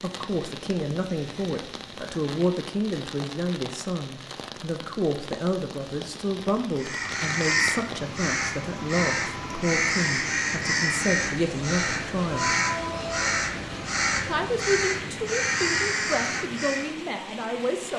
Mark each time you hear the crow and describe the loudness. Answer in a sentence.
You can hear the crow from 6.8 to 16.9 s, at a steady volume.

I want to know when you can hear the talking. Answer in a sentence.
The talking can be heard from 0.0 to 12.5 s and from 14.2 to 17.9 s.